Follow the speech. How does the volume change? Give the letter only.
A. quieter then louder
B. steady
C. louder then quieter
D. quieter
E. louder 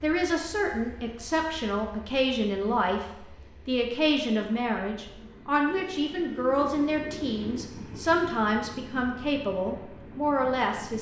B.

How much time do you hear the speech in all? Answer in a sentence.
The speech can be heard for 11 seconds in total.